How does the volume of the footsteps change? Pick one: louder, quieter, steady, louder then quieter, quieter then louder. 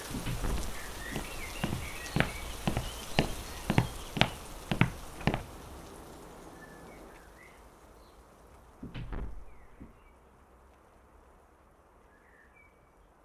louder.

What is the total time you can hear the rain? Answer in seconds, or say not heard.
13 s.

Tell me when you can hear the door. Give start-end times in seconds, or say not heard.
0.1-1.3, 5.1-7.2, 8.8-10.0.